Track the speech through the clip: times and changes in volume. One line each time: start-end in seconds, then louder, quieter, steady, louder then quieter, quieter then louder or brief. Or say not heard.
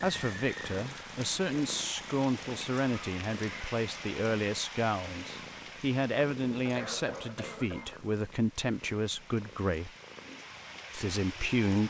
0.0-9.9 steady
10.9-11.8 brief.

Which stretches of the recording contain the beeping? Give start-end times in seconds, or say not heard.
not heard.